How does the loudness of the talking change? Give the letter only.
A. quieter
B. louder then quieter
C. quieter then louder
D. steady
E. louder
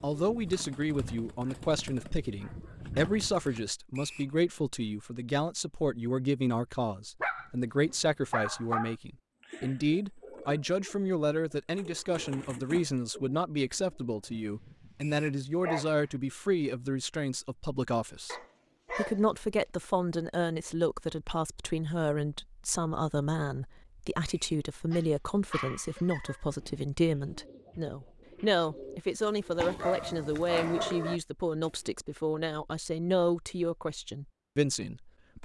D.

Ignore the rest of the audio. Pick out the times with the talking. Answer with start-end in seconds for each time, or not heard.
0.0-35.3.